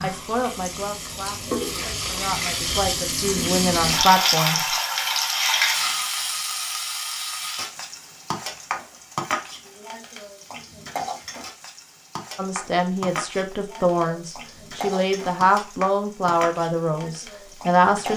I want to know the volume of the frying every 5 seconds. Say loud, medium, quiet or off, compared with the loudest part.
loud, loud, medium, medium.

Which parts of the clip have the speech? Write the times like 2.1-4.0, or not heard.
0.0-4.7, 12.3-18.1.